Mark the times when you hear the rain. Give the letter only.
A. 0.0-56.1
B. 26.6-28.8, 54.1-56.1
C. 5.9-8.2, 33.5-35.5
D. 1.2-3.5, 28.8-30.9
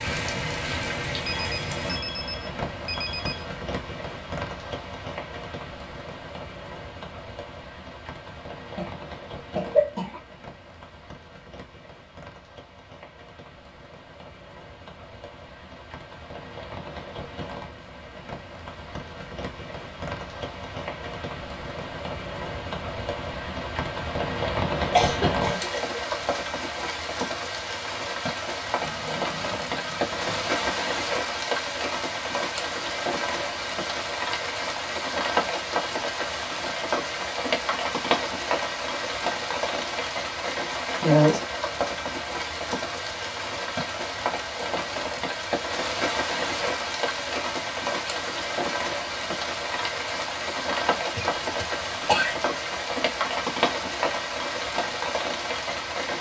A.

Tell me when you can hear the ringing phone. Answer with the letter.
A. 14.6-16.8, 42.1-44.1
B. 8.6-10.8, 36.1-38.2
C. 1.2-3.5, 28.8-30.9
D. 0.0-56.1
C.